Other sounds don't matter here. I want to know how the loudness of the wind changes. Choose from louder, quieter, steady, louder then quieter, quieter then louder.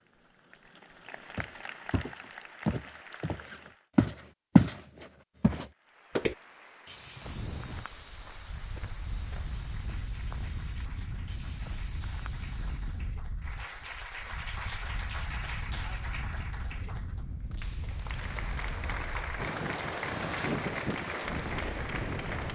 louder.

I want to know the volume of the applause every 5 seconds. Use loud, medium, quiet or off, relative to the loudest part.
medium, quiet, medium, loud, loud.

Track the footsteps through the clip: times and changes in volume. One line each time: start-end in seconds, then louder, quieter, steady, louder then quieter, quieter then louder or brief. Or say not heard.
1.4-13.2 louder then quieter.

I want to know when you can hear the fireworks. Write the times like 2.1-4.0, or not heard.
not heard.